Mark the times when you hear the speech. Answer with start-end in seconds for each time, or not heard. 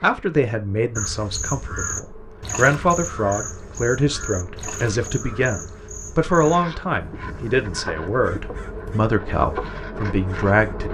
0.0-10.9.